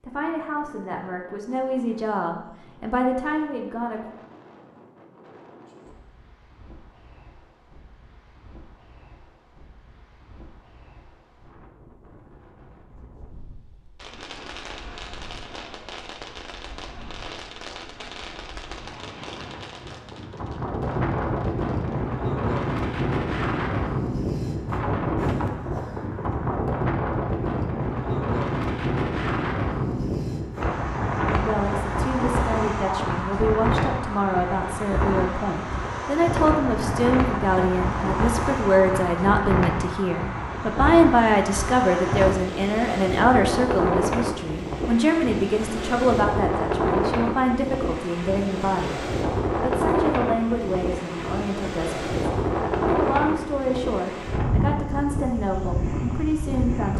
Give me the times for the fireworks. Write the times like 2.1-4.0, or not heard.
13.9-22.0.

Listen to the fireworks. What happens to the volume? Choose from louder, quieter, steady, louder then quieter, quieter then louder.
quieter.